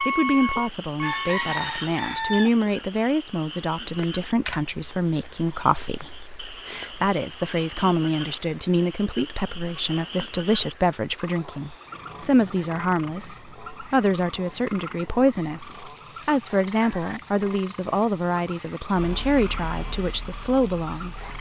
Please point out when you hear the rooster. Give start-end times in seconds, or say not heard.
0.6-2.5.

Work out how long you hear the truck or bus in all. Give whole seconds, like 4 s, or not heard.
4 s.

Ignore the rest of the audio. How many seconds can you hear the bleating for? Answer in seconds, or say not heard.
not heard.